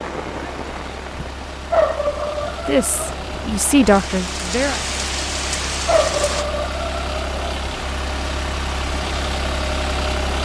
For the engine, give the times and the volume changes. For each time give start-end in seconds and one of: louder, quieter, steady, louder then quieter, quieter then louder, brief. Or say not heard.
0.0-10.4 louder.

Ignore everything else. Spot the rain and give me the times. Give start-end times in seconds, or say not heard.
0.0-6.5.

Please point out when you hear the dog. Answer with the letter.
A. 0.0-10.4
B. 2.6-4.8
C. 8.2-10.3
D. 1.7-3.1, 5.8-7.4
D.